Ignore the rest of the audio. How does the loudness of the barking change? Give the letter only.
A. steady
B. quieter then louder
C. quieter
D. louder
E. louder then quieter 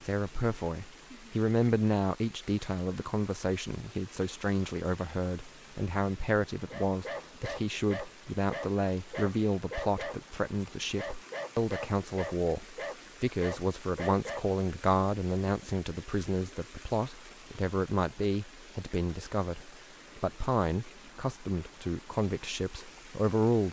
A.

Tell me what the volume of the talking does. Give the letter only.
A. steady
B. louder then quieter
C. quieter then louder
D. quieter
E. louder
A.